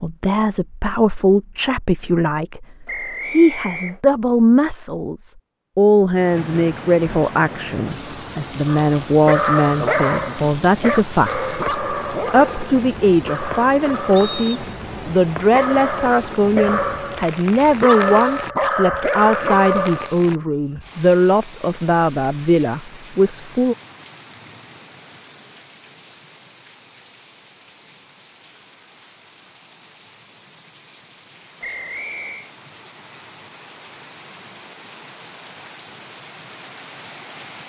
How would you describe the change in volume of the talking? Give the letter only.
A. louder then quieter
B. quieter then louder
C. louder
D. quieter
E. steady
E.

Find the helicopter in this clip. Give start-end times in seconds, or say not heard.
not heard.